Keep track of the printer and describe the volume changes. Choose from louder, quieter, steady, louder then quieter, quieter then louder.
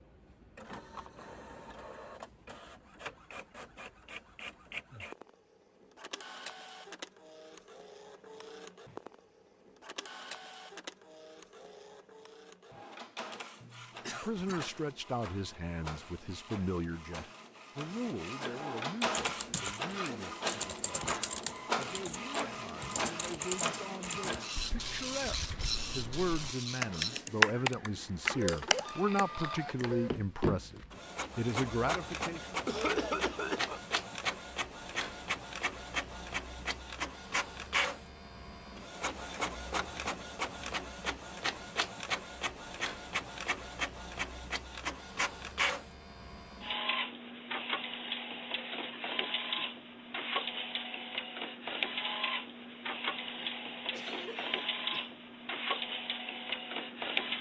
louder.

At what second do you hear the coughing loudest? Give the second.
33 s.